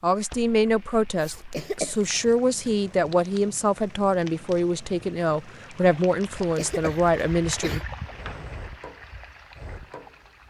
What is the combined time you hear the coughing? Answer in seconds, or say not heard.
2 s.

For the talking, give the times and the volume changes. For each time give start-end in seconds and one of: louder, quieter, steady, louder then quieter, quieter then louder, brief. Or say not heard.
0.0-7.8 steady.